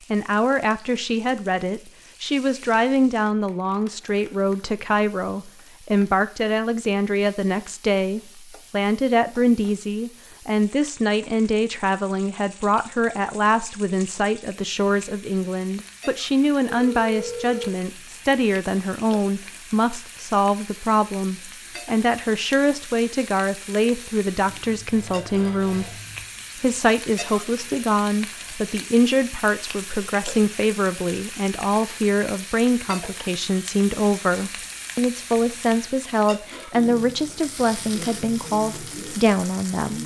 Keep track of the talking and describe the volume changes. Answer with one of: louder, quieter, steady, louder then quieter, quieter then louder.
steady.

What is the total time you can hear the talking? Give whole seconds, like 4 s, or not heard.
40 s.